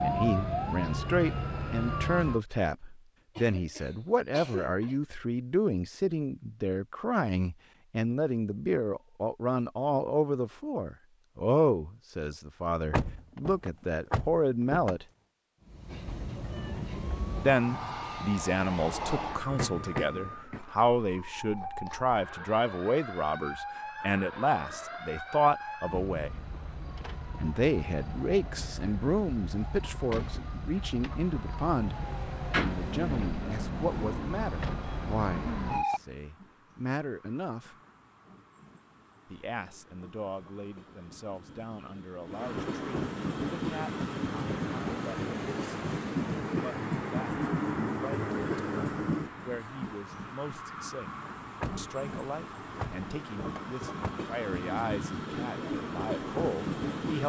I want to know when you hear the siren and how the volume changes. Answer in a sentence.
The siren can be heard briefly from 0.0 to 2.4 s; and from 16.4 to 36.0 s, getting louder.